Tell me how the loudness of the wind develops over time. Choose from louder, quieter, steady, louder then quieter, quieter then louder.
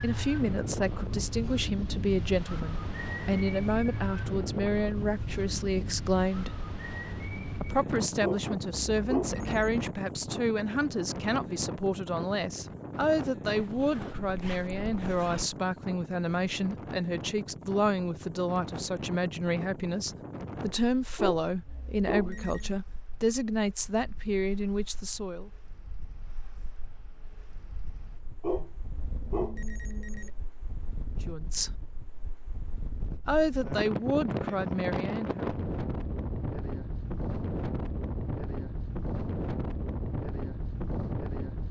quieter then louder.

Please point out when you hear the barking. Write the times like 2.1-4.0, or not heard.
8.2-9.8, 21.1-22.8, 28.4-30.4.